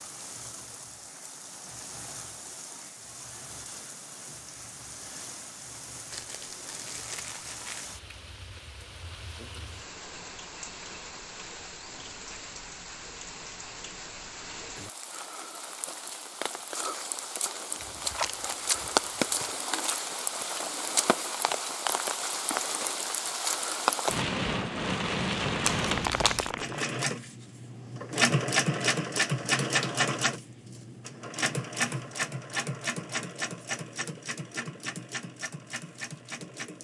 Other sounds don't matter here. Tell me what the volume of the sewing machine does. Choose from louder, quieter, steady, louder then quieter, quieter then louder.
quieter.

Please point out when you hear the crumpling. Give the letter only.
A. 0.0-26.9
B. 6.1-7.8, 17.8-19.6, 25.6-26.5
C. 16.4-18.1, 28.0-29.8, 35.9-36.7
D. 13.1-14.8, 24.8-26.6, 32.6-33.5
B.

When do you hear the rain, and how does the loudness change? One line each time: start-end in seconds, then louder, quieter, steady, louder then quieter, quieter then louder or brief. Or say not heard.
0.0-26.9 louder.